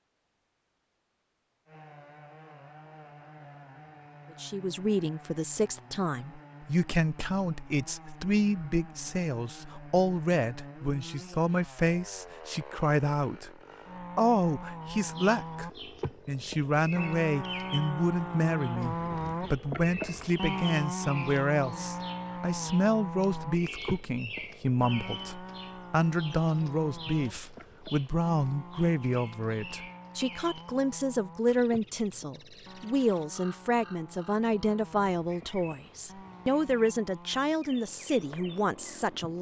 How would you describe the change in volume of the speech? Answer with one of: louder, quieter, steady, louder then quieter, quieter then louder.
steady.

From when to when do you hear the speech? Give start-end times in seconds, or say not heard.
4.4-13.5, 14.2-39.3.